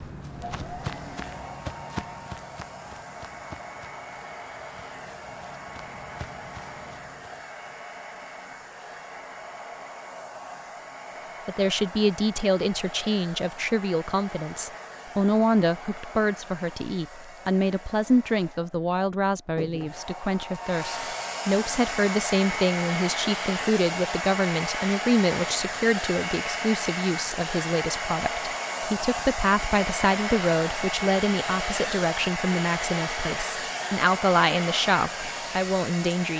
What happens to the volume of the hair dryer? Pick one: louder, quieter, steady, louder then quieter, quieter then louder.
louder.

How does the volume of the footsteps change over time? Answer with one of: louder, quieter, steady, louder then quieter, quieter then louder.
quieter then louder.